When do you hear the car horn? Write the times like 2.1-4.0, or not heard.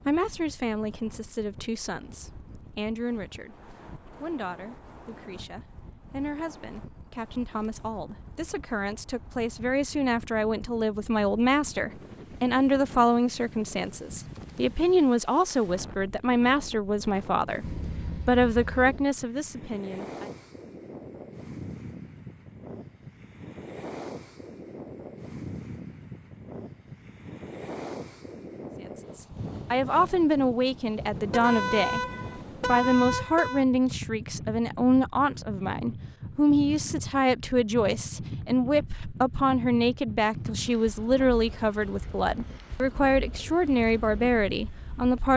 17.6-19.1, 31.3-33.6.